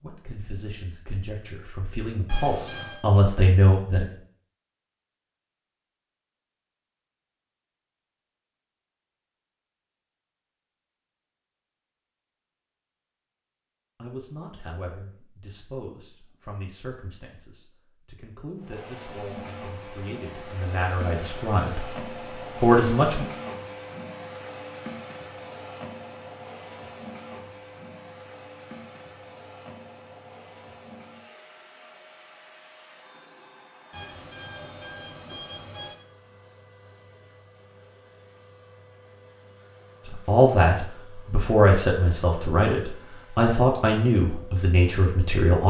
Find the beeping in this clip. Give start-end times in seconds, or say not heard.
2.2-3.0, 33.9-36.0.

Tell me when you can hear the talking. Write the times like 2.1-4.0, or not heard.
0.0-4.0, 13.9-21.9, 22.6-23.2, 40.0-45.6.